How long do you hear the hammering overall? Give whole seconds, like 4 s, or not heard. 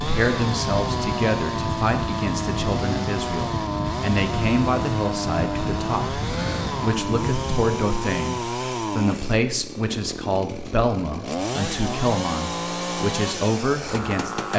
not heard.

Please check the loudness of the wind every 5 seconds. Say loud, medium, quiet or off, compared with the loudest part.
loud, loud, off.